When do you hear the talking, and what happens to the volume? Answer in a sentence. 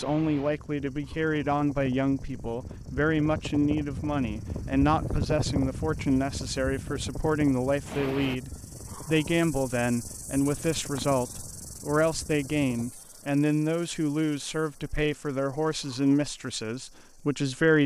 The talking can be heard from 0.0 to 17.8 s, at a steady volume.